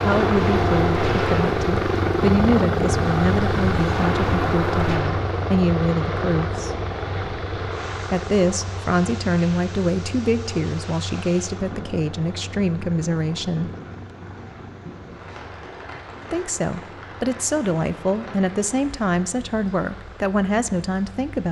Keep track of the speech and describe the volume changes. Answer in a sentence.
The loudness of the speech stays about the same.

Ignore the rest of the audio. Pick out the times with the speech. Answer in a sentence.
You can hear the speech from 0.0 to 6.7 s, from 8.1 to 13.7 s and from 16.3 to 21.4 s.